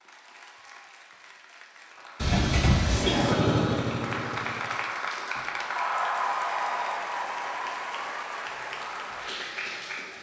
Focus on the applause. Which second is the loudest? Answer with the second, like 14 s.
6 s.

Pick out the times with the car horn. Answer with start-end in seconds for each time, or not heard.
2.2-3.1.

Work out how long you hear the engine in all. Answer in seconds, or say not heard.
2 s.